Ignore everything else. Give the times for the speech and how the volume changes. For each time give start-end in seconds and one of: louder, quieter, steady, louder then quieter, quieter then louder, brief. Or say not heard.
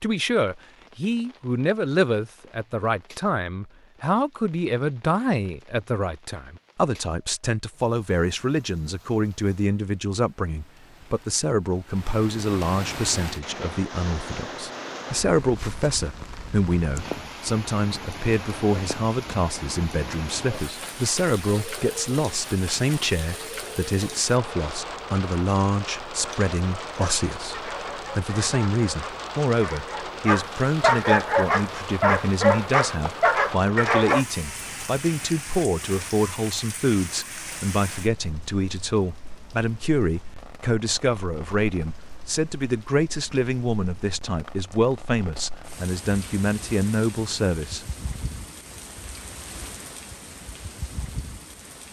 0.0-47.9 steady.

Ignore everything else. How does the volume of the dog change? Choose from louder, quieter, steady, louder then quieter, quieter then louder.
louder.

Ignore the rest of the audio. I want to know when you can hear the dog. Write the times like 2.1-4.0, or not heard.
26.1-34.2.